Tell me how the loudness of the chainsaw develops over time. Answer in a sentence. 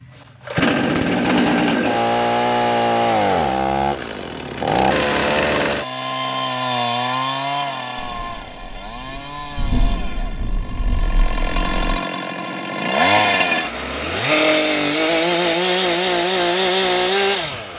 The loudness of the chainsaw goes down, then up.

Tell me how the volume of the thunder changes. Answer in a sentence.
The volume of the thunder goes up, then down.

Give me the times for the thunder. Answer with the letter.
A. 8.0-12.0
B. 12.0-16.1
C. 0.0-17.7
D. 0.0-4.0
A.